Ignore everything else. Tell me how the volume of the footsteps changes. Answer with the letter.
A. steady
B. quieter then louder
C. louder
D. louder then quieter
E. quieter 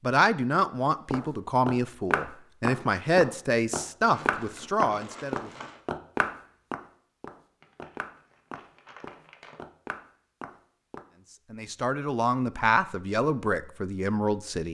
E.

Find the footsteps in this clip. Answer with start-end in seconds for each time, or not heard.
1.1-11.1.